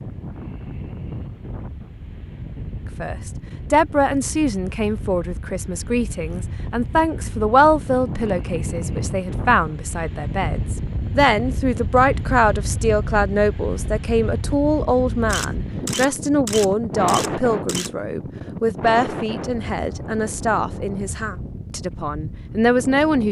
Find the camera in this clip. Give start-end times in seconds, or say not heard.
15.2-17.9.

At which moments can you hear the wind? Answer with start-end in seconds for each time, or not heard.
0.0-23.2.